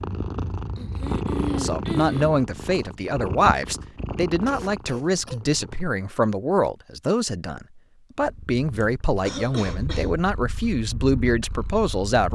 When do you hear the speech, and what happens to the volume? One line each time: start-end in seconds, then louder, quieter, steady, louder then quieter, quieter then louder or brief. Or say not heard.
1.5-12.2 steady.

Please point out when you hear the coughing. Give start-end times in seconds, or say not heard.
0.8-2.4, 4.5-5.4, 8.8-10.1.